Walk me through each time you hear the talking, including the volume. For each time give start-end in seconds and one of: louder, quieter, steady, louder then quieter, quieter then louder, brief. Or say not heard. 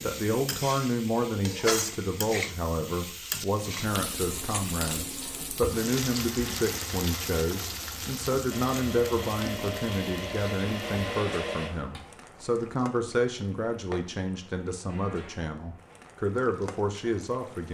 0.0-17.6 steady.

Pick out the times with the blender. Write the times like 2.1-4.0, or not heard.
4.1-12.0.